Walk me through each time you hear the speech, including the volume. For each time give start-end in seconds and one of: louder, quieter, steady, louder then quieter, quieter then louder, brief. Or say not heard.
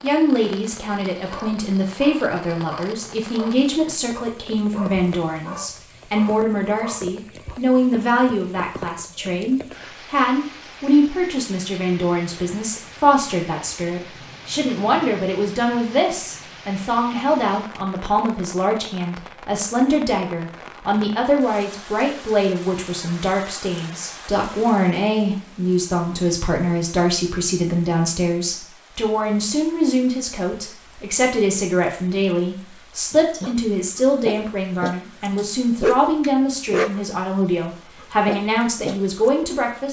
0.0-39.8 steady.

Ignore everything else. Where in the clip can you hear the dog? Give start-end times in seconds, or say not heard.
1.2-7.5, 33.1-37.1, 38.0-39.3.